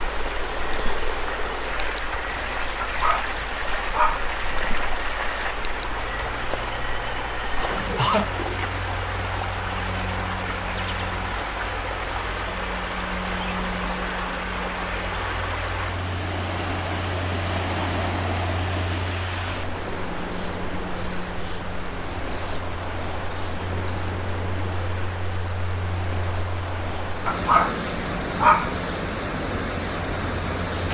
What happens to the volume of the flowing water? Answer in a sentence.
The volume of the flowing water stays about the same.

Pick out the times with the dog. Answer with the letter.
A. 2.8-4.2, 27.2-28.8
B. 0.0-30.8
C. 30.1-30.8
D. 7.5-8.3
A.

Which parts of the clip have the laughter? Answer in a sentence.
The laughter can be heard from 7.5 to 8.3 s.